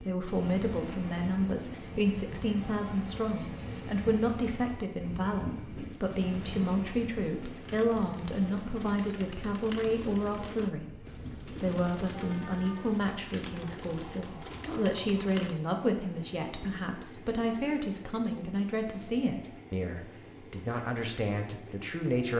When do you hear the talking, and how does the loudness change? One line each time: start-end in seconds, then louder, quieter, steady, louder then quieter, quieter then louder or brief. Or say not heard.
0.0-22.3 steady.